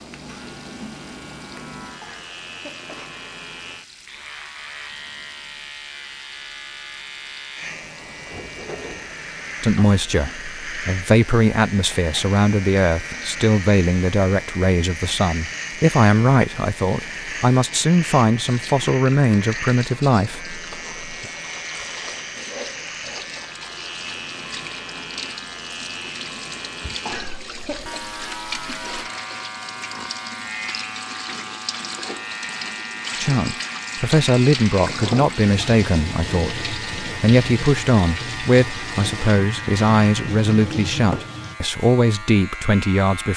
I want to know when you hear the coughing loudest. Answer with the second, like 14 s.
27 s.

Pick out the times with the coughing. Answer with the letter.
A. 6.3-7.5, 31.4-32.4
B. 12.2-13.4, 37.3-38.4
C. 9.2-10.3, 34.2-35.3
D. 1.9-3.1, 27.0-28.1
D.